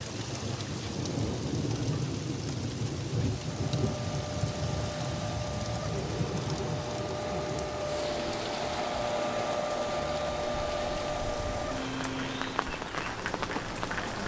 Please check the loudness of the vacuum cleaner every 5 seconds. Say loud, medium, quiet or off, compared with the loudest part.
medium, loud, loud.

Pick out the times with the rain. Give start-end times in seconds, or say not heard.
0.0-14.2.